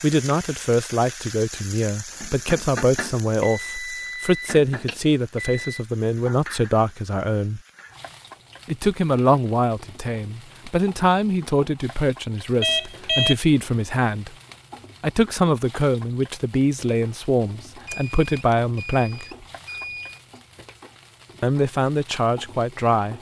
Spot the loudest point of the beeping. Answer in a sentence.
The loudest moment of the beeping is at 13 seconds.